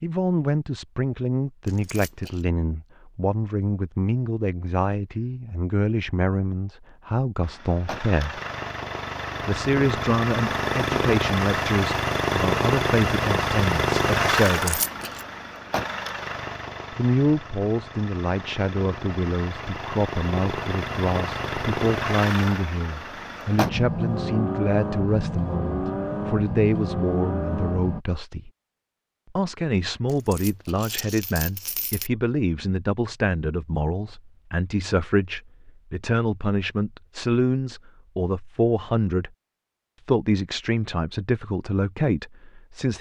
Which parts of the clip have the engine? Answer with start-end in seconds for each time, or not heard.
7.4-28.1.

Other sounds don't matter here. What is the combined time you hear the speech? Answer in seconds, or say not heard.
38 s.